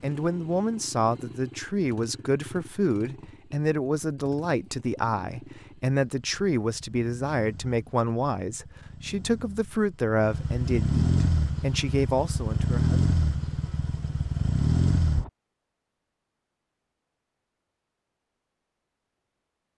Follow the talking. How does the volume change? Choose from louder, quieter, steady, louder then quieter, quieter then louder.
steady.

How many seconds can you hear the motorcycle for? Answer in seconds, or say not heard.
15 s.